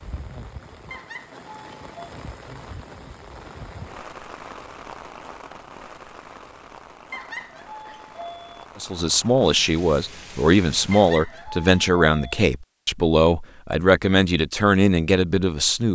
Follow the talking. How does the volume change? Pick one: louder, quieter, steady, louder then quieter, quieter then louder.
steady.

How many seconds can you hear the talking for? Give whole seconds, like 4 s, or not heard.
7 s.